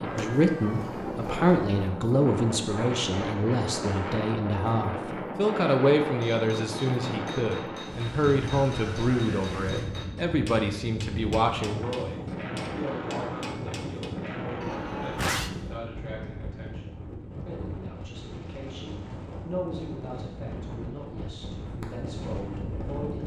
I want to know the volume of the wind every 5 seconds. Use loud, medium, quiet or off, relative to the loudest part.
loud, loud, loud, medium, medium.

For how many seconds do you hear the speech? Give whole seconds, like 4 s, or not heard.
23 s.